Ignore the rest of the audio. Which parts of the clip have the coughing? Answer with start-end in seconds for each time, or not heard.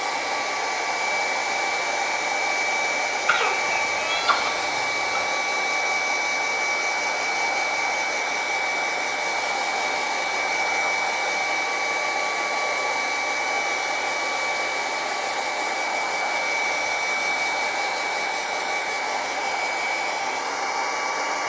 3.2-5.2.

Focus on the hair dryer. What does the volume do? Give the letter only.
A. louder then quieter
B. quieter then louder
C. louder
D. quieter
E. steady
E.